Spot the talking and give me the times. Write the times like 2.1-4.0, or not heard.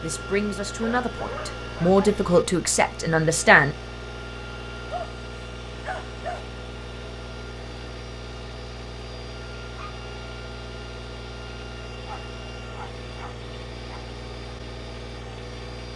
0.0-3.8.